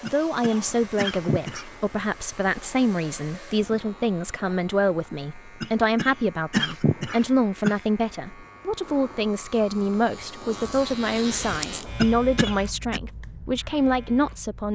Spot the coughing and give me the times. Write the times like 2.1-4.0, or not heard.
0.1-1.7, 5.6-7.8, 11.9-13.0.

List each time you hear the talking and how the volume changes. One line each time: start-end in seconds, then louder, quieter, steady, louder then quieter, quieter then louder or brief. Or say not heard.
0.0-14.7 steady.